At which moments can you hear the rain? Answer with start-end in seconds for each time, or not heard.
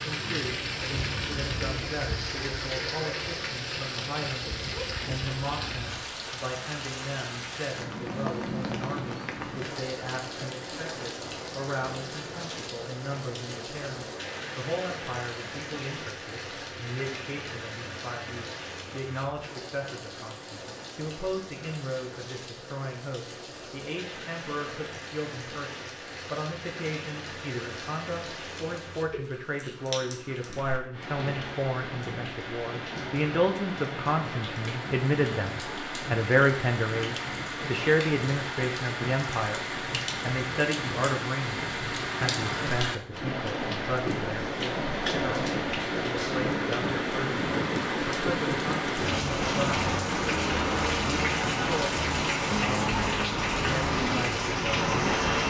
0.0-55.4.